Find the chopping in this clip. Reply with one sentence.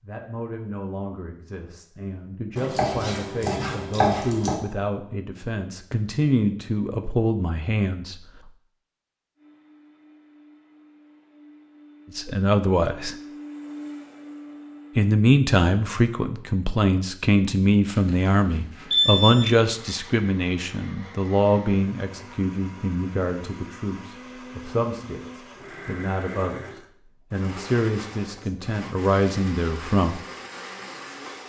The chopping can be heard from 2.5 to 4.5 s.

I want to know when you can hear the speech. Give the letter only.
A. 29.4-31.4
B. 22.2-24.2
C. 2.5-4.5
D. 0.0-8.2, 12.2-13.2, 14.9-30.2
D.